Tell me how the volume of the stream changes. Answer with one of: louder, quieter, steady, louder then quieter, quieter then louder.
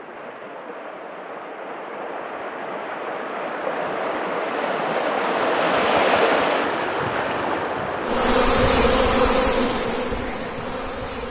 louder then quieter.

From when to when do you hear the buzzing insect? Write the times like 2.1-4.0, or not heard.
8.0-11.2.